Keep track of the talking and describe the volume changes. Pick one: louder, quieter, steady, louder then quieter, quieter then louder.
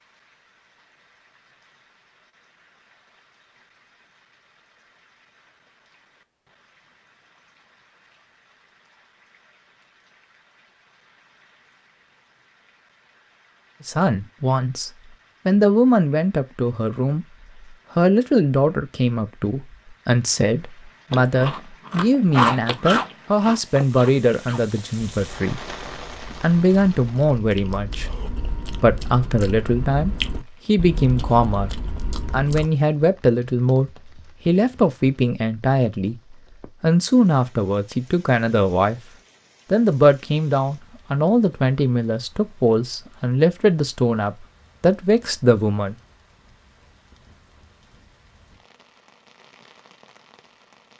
steady.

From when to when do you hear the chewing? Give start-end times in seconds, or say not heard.
21.1-32.7.